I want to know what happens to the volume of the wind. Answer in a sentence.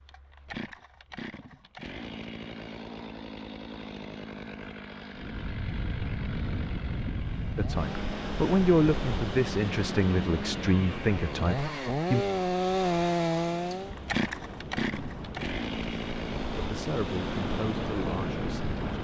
The loudness of the wind goes down, then up.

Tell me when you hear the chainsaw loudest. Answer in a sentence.
The loudest moment of the chainsaw is at 13 seconds.